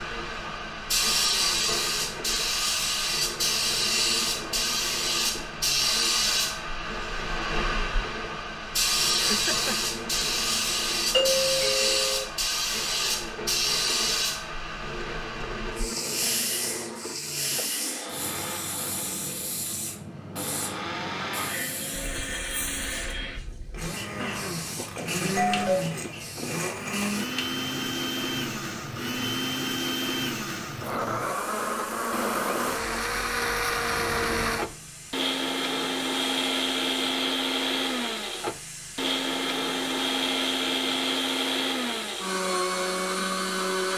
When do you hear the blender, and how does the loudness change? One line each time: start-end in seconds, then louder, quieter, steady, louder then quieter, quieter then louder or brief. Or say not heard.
0.0-43.9 louder.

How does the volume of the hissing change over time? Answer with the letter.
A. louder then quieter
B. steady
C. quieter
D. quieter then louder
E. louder
C.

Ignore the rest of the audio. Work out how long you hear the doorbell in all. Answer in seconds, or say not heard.
3 s.